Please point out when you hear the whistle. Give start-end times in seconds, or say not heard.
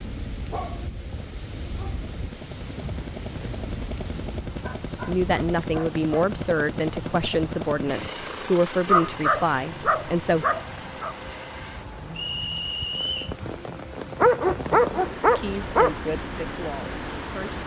12.2-13.3.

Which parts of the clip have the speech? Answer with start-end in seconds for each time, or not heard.
5.0-10.4, 15.3-17.6.